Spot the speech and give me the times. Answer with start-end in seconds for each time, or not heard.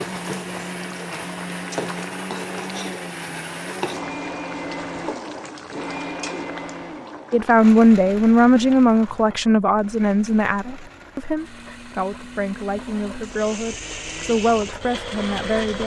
7.3-15.8.